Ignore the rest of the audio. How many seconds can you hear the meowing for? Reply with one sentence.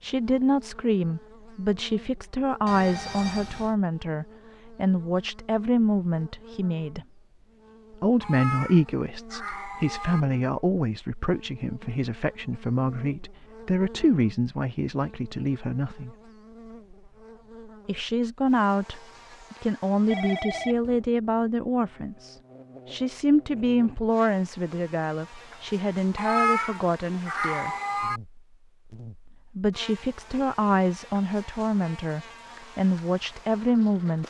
You can hear the meowing for 4 seconds altogether.